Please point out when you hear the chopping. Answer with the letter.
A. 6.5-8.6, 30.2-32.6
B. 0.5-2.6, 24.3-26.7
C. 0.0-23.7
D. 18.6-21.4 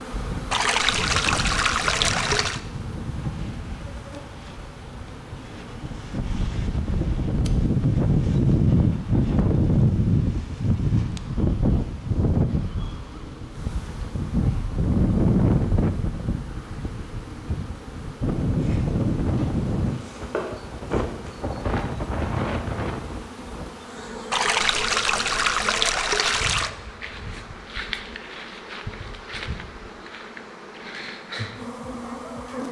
D.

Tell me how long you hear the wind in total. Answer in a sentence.
The wind can be heard for 24 seconds in total.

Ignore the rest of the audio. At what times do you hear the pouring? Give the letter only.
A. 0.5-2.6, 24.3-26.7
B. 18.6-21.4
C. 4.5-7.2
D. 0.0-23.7
A.